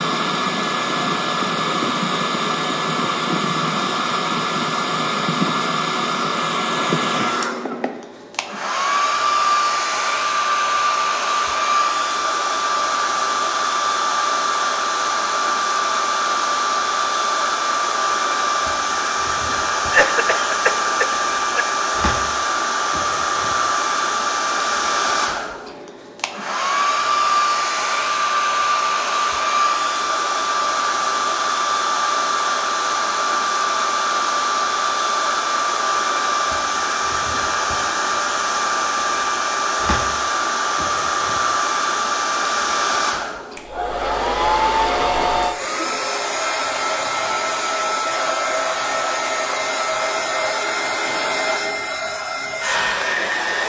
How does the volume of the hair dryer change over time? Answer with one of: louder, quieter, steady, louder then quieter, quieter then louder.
steady.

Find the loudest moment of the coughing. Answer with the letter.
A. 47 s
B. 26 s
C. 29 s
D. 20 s
D.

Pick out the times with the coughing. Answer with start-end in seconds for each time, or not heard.
19.9-21.6.